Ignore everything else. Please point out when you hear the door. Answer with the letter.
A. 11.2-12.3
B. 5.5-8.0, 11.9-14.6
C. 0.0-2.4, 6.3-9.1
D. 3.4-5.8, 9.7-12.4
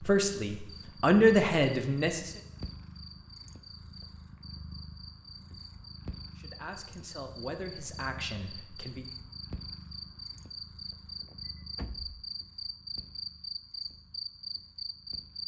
A.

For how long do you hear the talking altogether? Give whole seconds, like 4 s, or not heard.
5 s.